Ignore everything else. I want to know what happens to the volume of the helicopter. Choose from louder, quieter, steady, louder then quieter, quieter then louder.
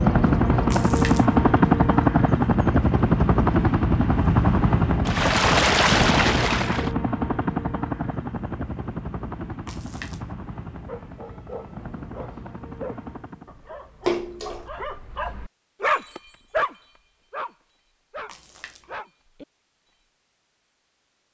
quieter.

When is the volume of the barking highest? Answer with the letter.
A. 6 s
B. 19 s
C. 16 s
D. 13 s
C.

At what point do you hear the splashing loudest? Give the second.
6 s.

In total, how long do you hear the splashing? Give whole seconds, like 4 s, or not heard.
4 s.